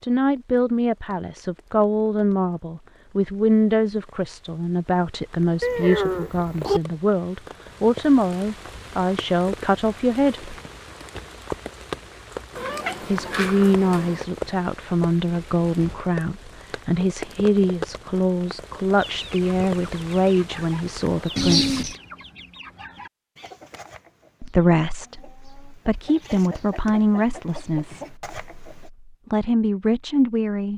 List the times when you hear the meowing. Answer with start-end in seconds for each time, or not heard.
5.6-6.8, 12.6-14.2, 21.4-22.0.